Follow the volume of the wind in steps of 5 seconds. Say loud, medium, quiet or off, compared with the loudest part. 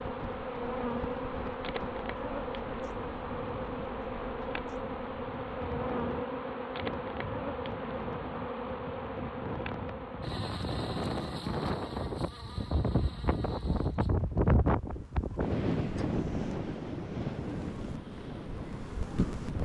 quiet, medium, loud, loud.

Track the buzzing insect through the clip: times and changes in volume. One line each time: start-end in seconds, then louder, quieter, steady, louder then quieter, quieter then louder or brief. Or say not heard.
0.0-19.5 quieter.